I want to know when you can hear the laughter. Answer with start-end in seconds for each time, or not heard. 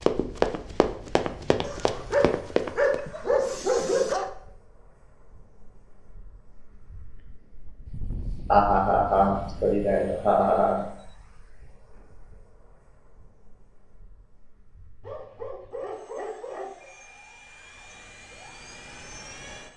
8.4-10.9.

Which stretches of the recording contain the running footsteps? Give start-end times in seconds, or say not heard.
0.0-3.0.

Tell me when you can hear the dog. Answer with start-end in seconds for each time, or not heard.
1.6-4.3, 15.0-16.9.